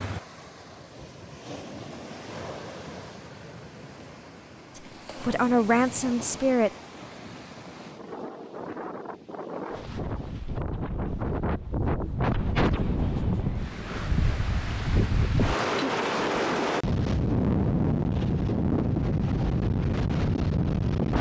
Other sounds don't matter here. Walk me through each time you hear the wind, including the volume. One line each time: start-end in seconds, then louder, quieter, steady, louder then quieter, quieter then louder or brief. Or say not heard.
0.0-21.1 louder.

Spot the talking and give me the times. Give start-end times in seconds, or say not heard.
4.8-6.7.